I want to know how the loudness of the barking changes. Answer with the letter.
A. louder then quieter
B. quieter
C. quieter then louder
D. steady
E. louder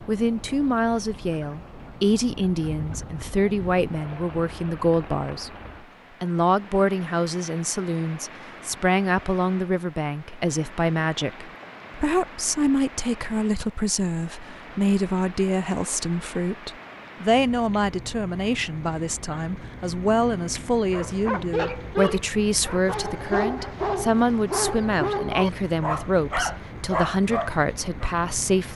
D.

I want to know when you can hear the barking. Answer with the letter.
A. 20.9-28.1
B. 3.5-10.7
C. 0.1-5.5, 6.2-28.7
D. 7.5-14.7
A.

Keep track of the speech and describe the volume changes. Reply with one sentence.
The volume of the speech stays about the same.